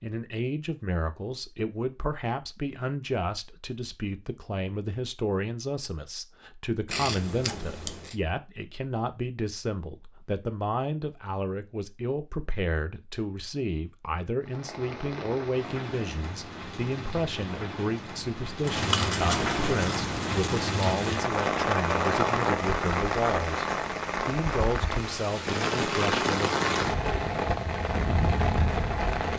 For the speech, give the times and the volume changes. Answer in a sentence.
You can hear the speech from 0.0 to 26.6 s, at a steady volume.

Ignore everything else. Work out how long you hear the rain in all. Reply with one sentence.
You can hear the rain for 15 seconds altogether.